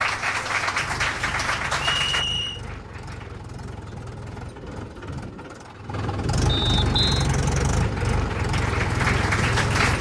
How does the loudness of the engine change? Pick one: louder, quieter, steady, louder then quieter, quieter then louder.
louder.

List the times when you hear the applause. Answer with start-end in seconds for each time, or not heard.
0.0-3.4, 6.8-9.9.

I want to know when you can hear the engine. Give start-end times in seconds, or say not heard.
0.0-9.9.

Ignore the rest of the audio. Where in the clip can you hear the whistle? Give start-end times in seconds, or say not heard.
2.0-2.6, 6.5-7.3.